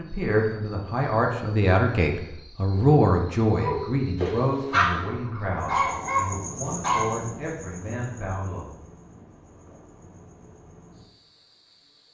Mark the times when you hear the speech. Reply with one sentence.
You can hear the speech from 0.0 to 8.7 s.